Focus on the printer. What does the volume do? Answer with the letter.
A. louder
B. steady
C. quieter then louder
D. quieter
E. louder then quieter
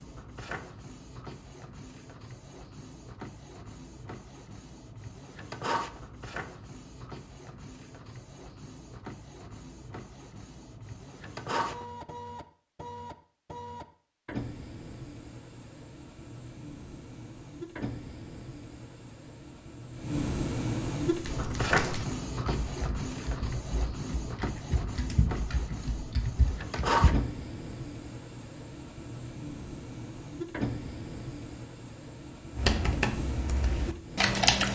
E.